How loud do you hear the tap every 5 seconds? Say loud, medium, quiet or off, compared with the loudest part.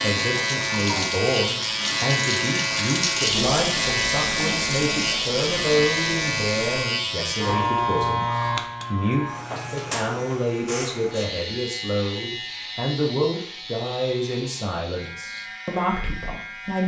loud, loud, off, off.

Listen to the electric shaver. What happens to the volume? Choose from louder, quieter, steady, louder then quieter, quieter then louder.
quieter.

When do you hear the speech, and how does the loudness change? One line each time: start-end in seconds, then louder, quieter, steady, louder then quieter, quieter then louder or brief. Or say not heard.
0.0-16.8 steady.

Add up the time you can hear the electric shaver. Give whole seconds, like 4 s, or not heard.
17 s.